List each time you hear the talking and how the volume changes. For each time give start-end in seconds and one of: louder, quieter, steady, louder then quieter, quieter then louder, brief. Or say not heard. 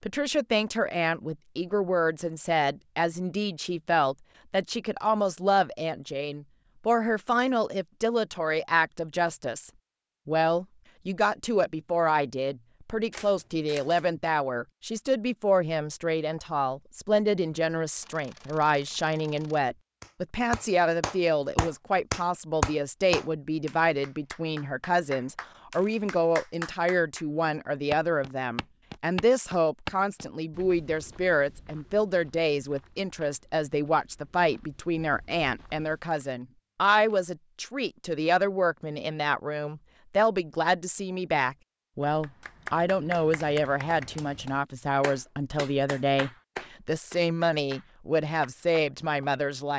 0.0-49.7 steady.